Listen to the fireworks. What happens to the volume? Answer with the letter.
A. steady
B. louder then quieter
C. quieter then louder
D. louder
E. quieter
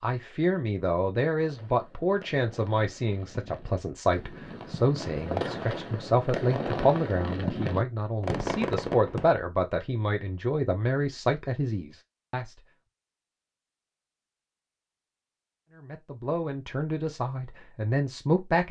D.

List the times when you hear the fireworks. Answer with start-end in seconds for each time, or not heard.
1.4-9.3.